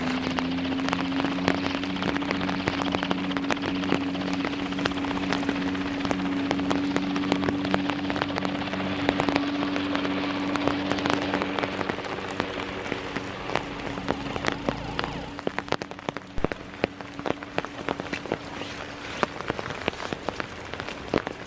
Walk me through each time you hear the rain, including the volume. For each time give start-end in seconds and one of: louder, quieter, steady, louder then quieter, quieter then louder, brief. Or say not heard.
0.0-21.4 steady.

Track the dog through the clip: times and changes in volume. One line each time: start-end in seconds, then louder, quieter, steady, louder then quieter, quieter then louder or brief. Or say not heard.
not heard.